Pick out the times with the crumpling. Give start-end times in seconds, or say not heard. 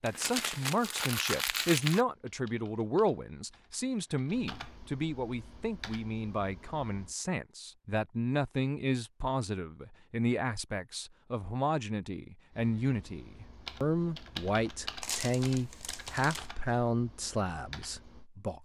0.1-2.0, 15.0-16.5.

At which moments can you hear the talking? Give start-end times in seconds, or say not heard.
0.0-18.6.